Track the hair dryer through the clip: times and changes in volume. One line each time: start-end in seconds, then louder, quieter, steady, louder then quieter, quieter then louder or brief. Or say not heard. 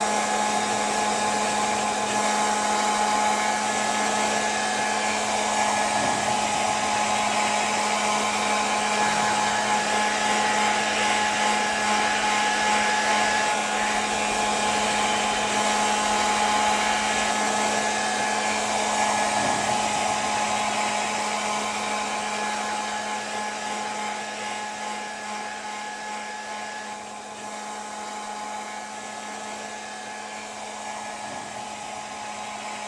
0.0-32.8 quieter.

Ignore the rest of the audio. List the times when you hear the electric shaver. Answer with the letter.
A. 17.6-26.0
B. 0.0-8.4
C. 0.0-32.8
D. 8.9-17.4
D.